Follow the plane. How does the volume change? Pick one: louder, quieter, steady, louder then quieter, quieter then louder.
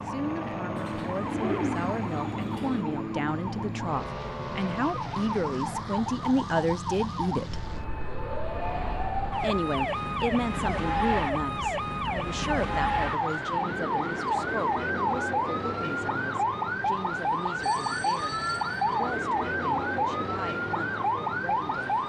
quieter.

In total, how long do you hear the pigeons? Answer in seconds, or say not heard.
2 s.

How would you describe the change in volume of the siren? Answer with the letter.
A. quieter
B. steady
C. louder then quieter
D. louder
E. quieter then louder
D.